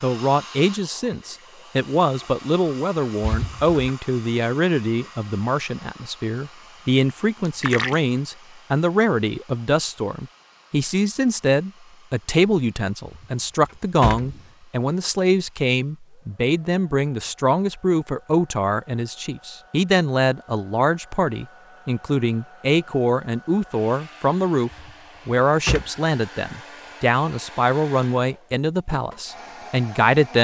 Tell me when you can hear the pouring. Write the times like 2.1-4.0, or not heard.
7.5-8.0.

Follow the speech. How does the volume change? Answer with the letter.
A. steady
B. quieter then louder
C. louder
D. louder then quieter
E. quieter
A.